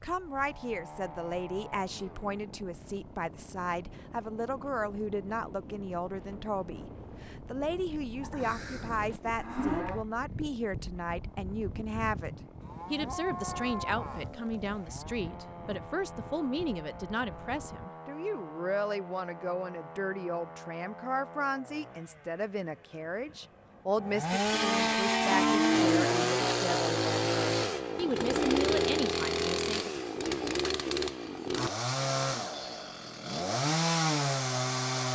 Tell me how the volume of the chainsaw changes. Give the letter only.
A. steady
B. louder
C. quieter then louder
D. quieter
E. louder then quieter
B.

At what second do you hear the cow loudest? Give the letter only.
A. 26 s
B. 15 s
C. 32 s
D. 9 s
A.